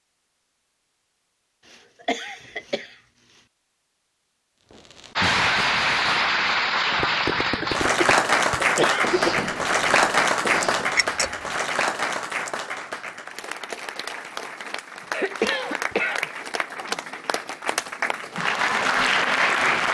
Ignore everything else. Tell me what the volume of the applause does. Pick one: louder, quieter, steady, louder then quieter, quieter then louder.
quieter then louder.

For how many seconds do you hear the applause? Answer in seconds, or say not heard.
15 s.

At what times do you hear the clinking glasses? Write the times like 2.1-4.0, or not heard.
10.9-11.5.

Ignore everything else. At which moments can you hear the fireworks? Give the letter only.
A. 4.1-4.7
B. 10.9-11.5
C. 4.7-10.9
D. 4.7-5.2
C.